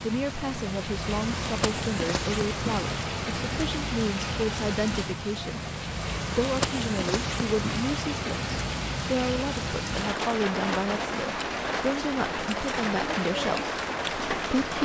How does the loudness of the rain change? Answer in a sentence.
The volume of the rain stays about the same.